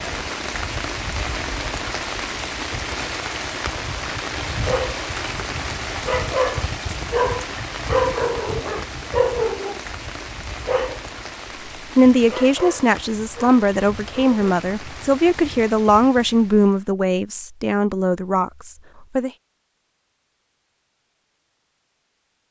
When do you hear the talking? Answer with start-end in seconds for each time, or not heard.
11.9-19.3.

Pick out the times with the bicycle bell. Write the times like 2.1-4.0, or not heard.
not heard.